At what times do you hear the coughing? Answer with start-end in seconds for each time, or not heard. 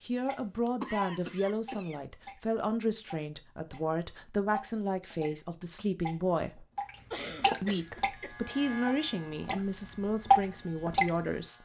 0.7-1.9, 7.1-8.3.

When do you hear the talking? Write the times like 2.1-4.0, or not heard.
0.0-6.7, 7.6-11.6.